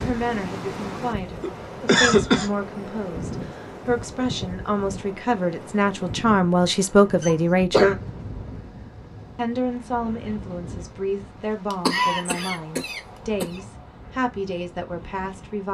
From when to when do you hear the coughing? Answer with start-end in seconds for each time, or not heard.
1.4-2.5, 7.2-8.0, 11.7-13.4.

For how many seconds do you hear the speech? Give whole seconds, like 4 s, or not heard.
14 s.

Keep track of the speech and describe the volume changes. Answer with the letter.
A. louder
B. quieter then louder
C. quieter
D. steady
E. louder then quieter
E.